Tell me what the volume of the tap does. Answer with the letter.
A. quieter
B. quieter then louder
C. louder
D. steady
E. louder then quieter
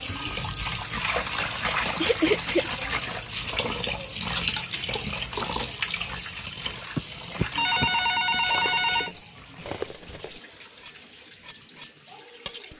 A.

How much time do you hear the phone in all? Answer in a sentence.
The phone can be heard for 3 seconds in total.